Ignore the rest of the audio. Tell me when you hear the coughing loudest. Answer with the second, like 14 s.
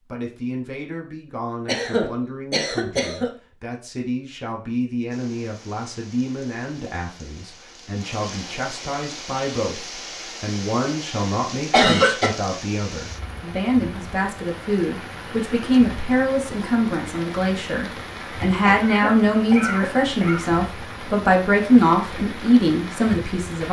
12 s.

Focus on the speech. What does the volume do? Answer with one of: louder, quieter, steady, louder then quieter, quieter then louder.
louder.